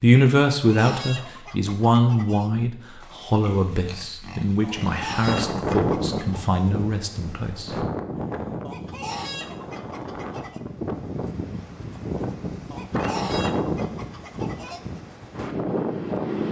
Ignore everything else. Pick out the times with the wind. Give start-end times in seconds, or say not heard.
4.8-16.4.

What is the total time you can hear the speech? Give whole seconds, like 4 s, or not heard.
8 s.